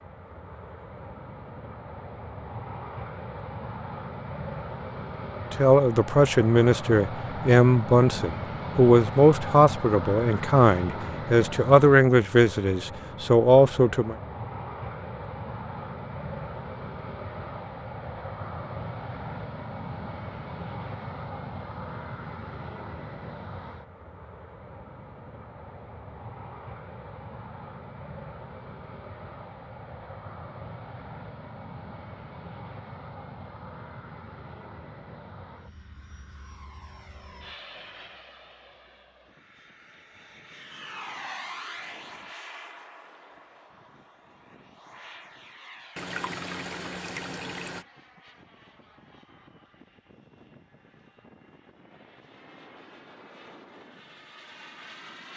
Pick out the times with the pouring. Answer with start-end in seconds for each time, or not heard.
46.0-47.9.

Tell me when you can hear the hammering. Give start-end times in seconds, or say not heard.
not heard.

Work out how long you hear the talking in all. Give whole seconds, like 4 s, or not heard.
9 s.